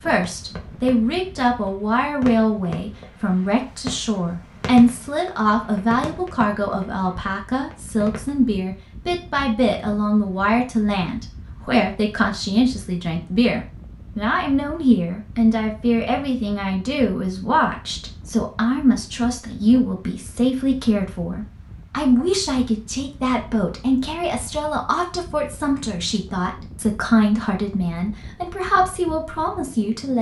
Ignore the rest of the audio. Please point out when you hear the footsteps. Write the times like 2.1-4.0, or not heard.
not heard.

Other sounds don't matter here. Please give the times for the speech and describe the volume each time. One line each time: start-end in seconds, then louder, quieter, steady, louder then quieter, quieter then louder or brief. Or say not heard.
0.1-30.1 steady.